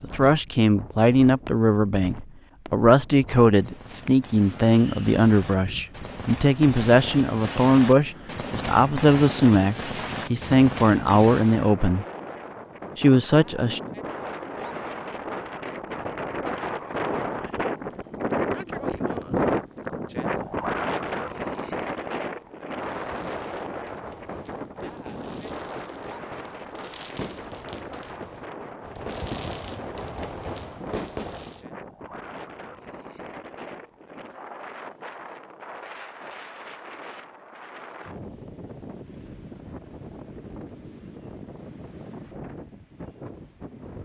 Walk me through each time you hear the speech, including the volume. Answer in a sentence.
The speech can be heard from 0.0 to 12.1 s, at a steady volume; and briefly from 12.9 to 13.8 s.